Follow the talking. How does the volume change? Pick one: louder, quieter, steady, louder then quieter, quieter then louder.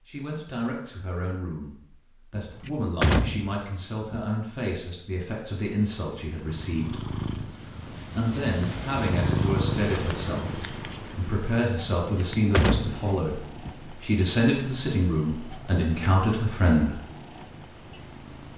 louder.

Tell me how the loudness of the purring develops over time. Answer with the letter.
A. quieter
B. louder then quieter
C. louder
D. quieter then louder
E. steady
B.